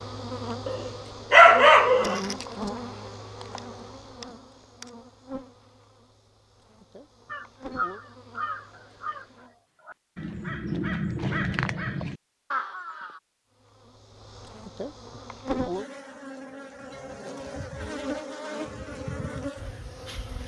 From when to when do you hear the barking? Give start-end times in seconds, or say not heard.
0.7-2.2.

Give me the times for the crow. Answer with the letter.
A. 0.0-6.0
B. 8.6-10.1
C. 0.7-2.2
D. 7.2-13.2
D.